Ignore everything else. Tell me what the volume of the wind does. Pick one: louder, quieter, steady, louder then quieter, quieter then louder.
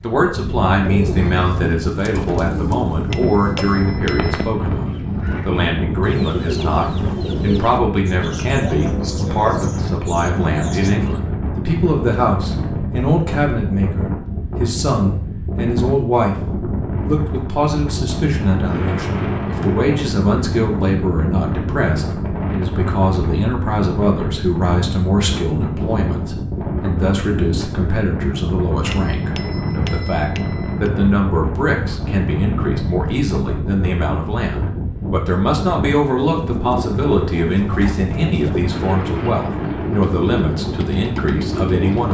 steady.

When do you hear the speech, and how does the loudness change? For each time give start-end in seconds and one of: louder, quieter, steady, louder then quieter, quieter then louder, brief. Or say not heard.
0.0-16.4 steady
17.1-42.1 steady.